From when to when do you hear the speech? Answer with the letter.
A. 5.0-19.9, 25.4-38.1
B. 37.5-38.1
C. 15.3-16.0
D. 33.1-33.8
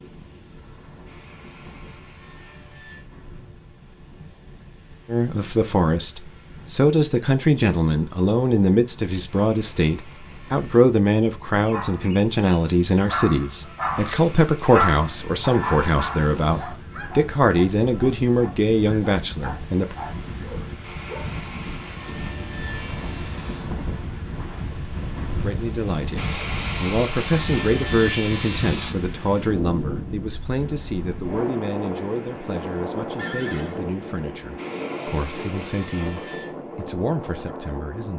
A.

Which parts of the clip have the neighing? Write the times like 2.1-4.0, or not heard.
33.1-33.8.